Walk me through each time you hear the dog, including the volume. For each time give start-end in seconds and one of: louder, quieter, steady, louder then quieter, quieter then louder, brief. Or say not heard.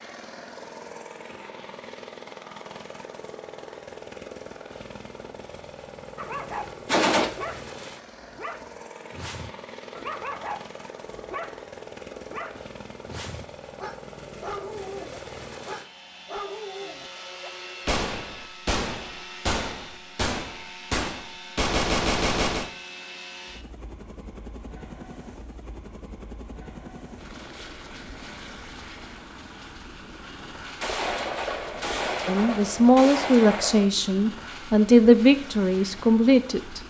6.2-17.5 steady.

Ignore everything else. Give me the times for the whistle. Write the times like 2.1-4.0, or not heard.
not heard.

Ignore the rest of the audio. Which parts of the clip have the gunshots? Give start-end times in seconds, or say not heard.
6.8-7.3, 17.9-22.7, 30.8-33.9.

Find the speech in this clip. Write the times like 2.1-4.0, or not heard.
32.2-36.8.